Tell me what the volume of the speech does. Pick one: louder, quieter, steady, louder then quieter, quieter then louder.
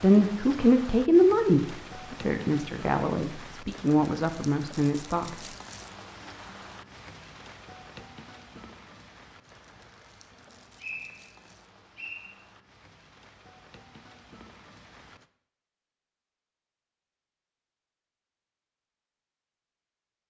quieter.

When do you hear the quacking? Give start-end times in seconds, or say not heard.
not heard.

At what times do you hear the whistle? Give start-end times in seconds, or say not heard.
10.3-12.2.